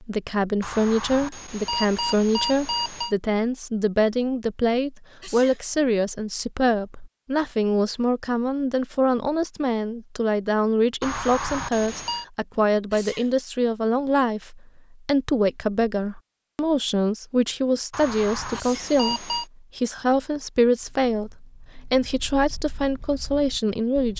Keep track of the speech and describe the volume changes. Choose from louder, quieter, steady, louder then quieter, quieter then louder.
steady.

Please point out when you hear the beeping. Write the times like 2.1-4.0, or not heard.
0.6-3.1, 11.0-12.2, 17.9-19.4.